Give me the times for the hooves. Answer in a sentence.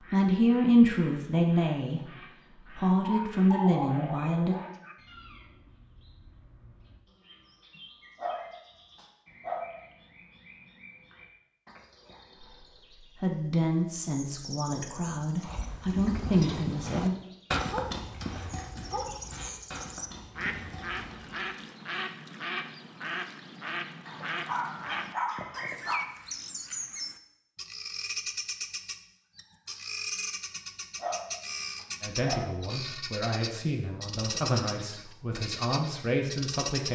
You can hear the hooves from 15.4 to 21.4 s.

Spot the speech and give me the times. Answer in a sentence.
The speech can be heard from 0.1 to 4.5 s, from 13.2 to 17.1 s and from 32.0 to 36.8 s.